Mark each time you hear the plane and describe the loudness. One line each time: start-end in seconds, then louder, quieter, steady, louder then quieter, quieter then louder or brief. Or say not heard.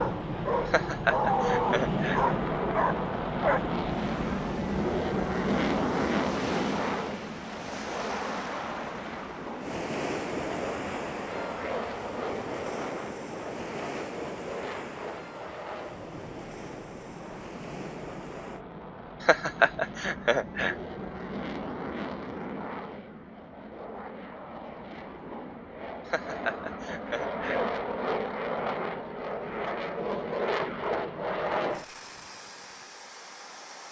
0.0-33.8 quieter then louder.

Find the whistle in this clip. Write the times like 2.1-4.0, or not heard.
not heard.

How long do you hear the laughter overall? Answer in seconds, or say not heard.
5 s.